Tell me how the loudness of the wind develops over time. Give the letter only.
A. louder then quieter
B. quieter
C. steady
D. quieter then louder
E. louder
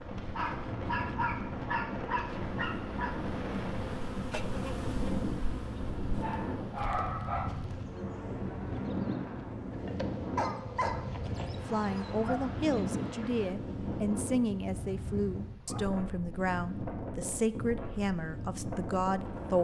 C.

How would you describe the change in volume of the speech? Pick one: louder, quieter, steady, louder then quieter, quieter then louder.
steady.